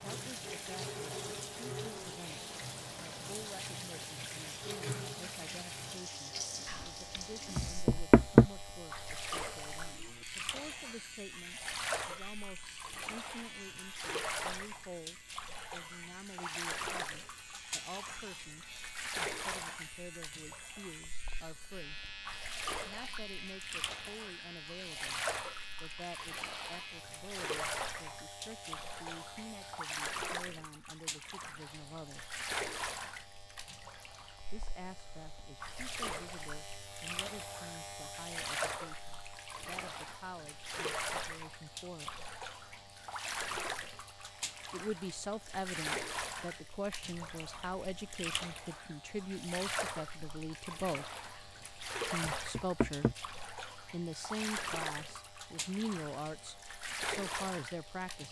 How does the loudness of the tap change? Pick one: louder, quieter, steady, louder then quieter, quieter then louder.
steady.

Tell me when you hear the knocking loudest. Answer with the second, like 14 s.
8 s.